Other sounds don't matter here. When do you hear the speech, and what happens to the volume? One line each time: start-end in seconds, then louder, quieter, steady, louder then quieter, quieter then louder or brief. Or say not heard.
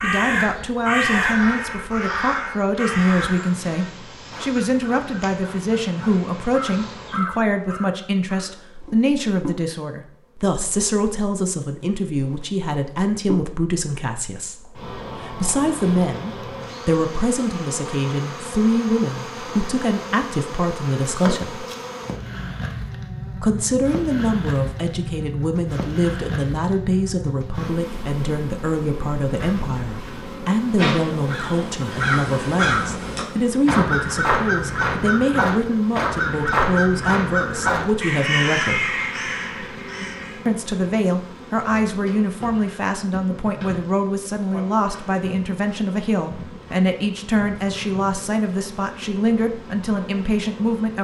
0.0-21.6 steady
23.4-39.0 steady
40.5-50.9 steady.